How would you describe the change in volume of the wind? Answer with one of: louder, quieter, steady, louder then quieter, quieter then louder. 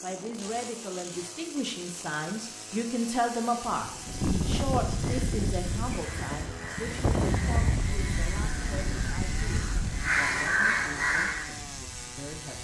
quieter.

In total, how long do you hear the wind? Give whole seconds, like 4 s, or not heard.
9 s.